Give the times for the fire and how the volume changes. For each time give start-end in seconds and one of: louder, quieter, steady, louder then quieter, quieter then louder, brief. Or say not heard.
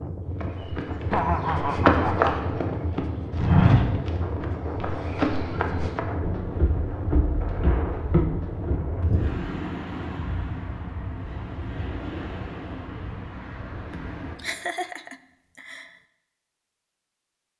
not heard.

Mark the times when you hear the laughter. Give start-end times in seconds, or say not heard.
1.1-2.5, 13.9-15.9.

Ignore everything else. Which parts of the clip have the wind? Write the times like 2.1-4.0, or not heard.
0.0-14.4.